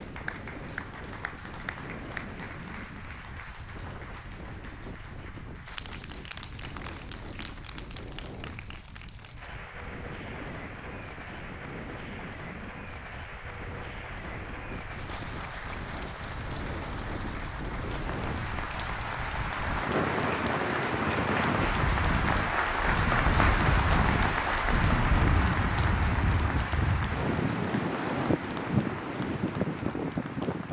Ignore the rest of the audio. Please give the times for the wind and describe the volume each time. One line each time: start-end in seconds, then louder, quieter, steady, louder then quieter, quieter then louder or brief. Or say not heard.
0.0-30.6 louder.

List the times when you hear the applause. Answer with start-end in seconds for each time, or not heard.
0.0-30.6.